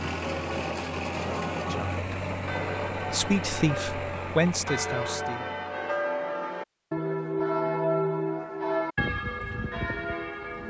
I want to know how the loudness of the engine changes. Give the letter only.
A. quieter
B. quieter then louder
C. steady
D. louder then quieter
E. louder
A.